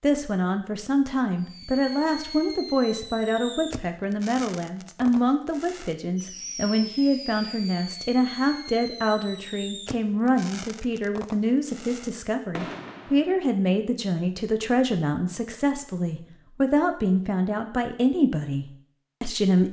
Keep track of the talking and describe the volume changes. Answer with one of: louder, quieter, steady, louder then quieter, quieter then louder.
steady.